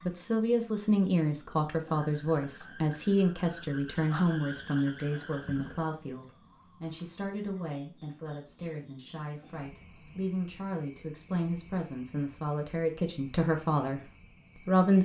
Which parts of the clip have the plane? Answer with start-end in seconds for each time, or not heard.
not heard.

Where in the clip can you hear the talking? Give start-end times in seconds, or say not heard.
0.1-15.0.